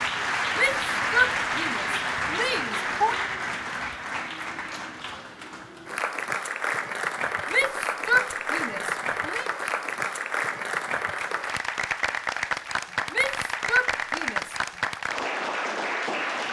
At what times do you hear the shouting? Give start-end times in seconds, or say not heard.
0.6-3.2, 7.5-9.4, 13.1-14.6.